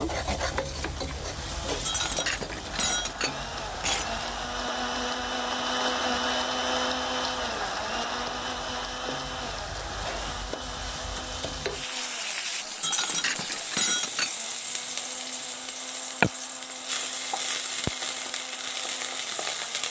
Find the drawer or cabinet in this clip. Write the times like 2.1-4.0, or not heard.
not heard.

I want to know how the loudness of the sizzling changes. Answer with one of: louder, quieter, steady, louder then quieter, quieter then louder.
quieter then louder.